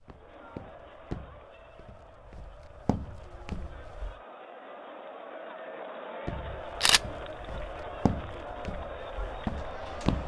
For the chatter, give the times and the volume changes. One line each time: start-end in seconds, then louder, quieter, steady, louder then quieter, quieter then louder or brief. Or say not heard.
0.0-10.2 louder.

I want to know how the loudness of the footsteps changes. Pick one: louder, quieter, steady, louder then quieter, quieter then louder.
louder.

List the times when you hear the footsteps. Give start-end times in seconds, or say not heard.
0.0-4.2, 6.2-10.2.